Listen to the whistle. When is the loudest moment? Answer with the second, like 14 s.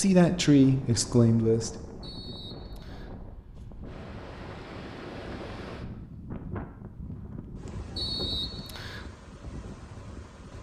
8 s.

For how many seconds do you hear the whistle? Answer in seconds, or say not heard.
2 s.